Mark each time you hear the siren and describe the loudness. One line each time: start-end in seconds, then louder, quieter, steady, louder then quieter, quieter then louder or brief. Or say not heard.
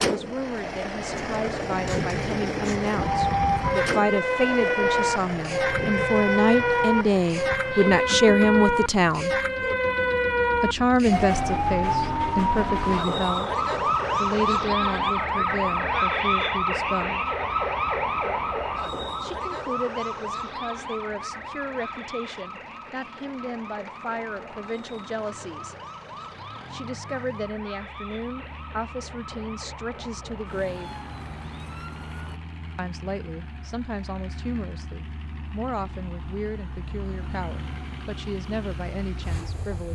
3.0-32.4 quieter.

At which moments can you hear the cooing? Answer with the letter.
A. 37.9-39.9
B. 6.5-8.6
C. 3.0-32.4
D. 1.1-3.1
D.